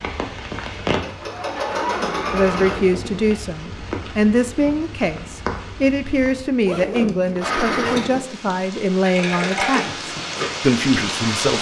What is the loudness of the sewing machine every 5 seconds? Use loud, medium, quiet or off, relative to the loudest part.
loud, loud, medium.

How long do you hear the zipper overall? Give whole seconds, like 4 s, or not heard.
3 s.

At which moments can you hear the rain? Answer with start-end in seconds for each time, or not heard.
0.0-11.5.